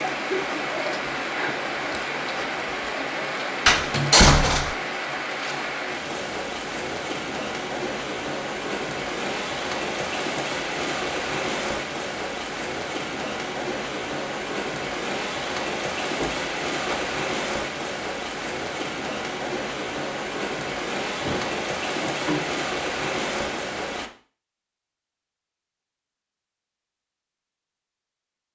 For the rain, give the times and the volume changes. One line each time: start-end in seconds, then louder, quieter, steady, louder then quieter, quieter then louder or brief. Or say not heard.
0.0-24.1 steady.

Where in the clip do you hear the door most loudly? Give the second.
4 s.